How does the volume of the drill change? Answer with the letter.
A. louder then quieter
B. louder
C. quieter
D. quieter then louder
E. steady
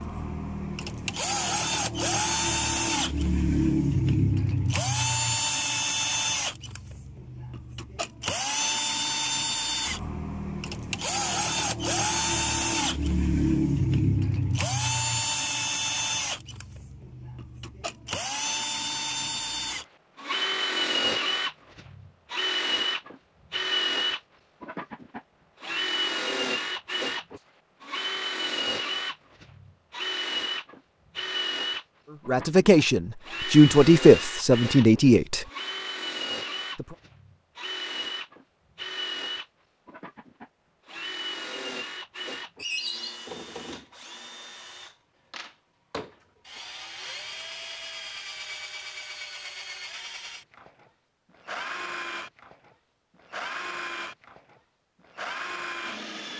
C.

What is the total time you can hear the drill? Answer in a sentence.
You can hear the drill for 56 seconds altogether.